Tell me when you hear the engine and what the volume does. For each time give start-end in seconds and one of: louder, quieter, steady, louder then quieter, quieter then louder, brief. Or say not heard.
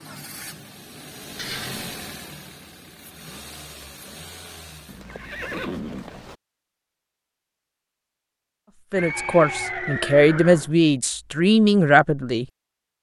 0.0-5.0 louder then quieter.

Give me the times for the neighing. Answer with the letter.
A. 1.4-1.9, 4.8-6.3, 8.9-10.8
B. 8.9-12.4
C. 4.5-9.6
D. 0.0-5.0
A.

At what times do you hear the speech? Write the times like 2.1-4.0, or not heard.
8.9-12.4.